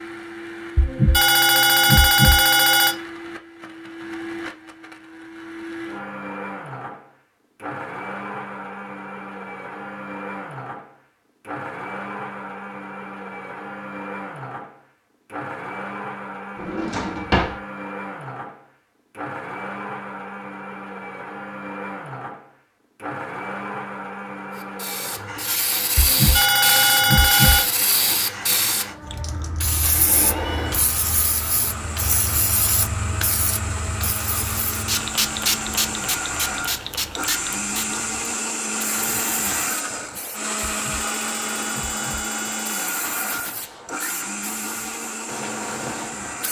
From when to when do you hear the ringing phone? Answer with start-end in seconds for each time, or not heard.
0.8-3.0, 25.9-27.7, 40.8-43.0.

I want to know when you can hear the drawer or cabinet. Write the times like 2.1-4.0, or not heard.
16.6-17.6.